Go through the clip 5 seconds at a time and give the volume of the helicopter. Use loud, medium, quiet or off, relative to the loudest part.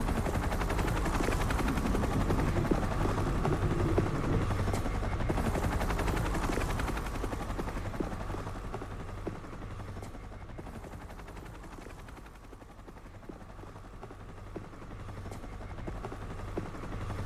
loud, loud, quiet, medium.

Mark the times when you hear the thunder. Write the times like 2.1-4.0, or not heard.
1.6-4.5.